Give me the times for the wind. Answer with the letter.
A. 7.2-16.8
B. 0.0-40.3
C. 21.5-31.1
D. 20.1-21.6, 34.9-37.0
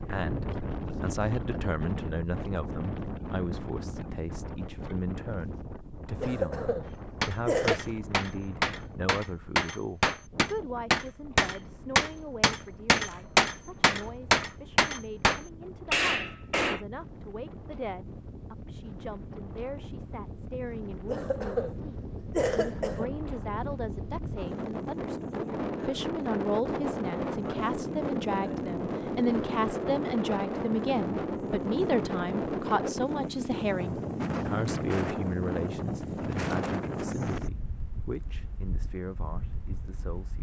B.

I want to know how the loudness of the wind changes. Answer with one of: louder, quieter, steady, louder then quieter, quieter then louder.
quieter then louder.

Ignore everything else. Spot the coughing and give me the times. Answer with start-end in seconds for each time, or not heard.
6.2-7.8, 21.1-23.1.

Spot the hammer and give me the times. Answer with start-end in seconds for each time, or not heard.
7.2-16.8.